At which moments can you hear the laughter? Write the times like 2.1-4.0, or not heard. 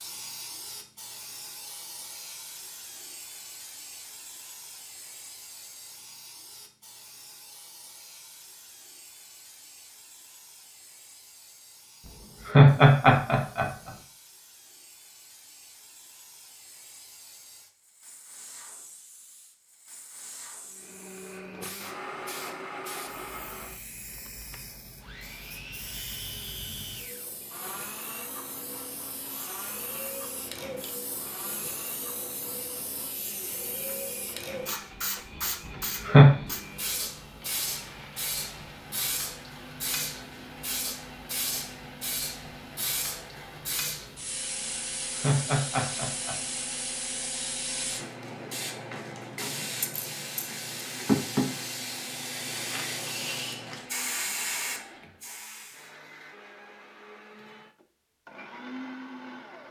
12.4-13.9, 35.6-36.3, 45.1-46.6.